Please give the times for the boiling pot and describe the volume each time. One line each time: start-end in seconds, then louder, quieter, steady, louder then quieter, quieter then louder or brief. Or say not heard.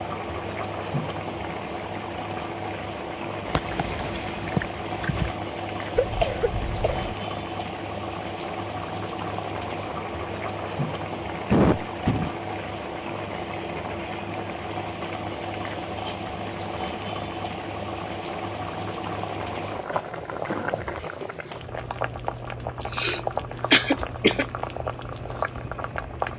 0.0-26.3 steady.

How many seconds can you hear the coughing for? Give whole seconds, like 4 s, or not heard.
4 s.